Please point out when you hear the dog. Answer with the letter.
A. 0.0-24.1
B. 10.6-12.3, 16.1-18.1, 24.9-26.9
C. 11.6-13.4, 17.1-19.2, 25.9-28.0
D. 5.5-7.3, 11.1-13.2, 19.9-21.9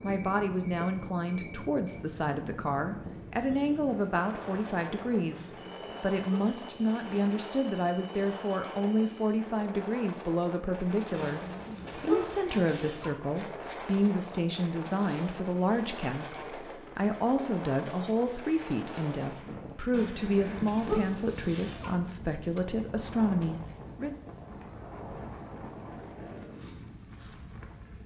D.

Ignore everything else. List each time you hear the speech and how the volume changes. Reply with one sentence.
The speech can be heard from 0.0 to 24.1 s, at a steady volume.